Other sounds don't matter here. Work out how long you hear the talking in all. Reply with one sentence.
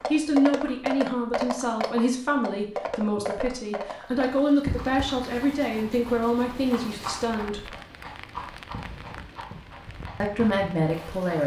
You can hear the talking for 9 seconds altogether.